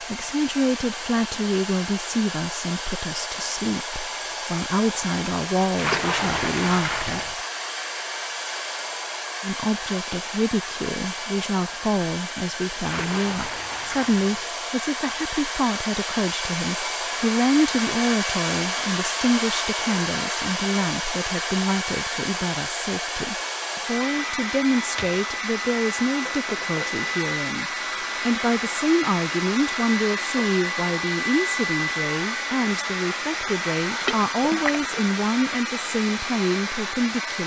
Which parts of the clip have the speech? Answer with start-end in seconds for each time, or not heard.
0.0-7.3, 9.4-37.4.